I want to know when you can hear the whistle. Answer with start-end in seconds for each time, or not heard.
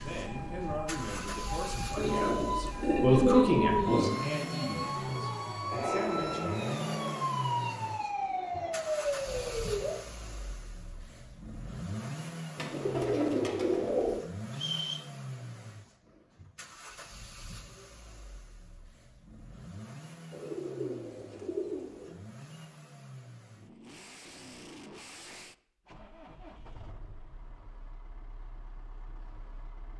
14.5-15.1.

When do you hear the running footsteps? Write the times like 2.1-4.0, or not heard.
not heard.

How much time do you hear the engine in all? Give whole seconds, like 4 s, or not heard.
30 s.